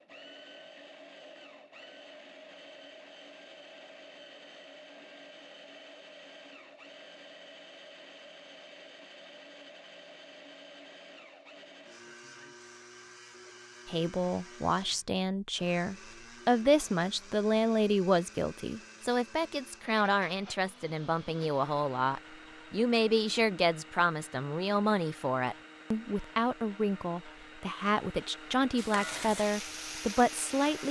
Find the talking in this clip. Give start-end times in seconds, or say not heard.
13.8-30.8.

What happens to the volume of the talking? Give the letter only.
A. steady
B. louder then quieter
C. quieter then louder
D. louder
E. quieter
A.